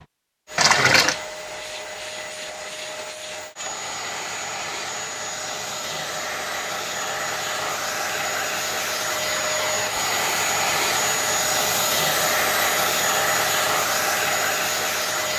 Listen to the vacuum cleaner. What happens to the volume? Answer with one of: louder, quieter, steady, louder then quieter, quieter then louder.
louder.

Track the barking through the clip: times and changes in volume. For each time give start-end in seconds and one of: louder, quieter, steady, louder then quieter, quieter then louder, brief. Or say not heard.
not heard.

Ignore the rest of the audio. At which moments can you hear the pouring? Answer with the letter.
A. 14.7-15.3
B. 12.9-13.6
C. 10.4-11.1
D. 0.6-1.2
D.